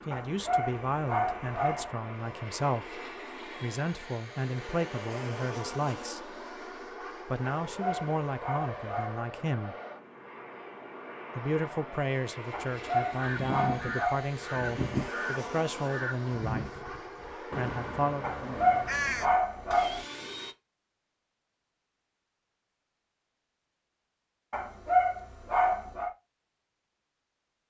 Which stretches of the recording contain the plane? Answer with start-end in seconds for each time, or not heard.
0.0-20.6.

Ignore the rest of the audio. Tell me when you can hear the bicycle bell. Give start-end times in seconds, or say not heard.
not heard.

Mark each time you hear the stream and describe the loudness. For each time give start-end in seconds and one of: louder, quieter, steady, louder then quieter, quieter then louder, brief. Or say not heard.
not heard.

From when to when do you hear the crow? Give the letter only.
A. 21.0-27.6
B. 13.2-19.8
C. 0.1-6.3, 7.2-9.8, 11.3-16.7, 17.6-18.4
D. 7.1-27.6
B.